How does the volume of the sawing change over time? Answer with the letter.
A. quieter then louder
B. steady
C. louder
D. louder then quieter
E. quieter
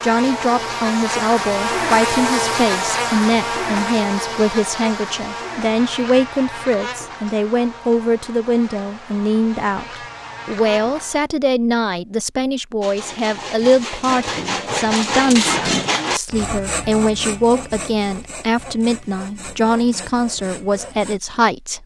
D.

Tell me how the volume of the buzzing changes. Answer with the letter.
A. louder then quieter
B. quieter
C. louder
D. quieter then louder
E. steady
B.